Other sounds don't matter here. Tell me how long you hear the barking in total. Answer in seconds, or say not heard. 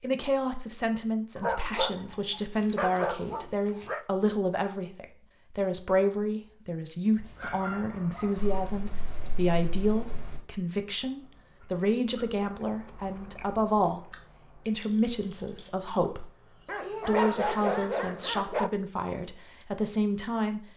6 s.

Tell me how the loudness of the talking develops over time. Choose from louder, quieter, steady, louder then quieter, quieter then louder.
steady.